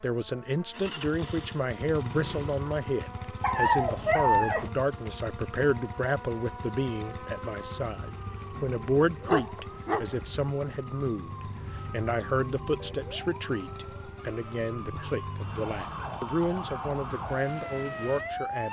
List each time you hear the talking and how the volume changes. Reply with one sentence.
You can hear the talking from 0.0 to 18.6 s, at a steady volume.